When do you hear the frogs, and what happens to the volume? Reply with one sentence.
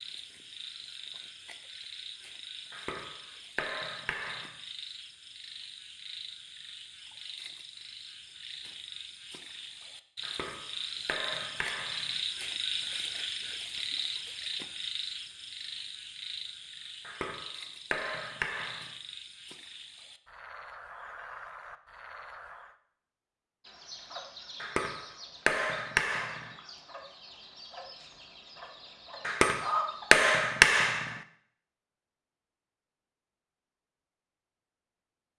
You can hear the frogs from 0.0 to 22.8 s, getting louder then quieter.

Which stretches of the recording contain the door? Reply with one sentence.
You can't hear the door here.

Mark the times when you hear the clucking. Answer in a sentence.
The clucking can be heard from 23.6 to 30.2 s.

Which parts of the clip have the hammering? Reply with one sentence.
The hammering can be heard from 2.7 to 4.5 s, from 10.2 to 12.2 s, from 17.1 to 18.9 s, from 24.6 to 26.6 s and from 29.2 to 31.2 s.